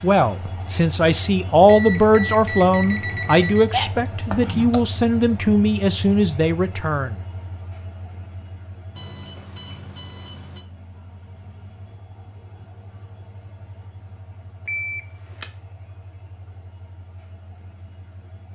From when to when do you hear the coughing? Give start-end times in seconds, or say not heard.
3.7-5.3.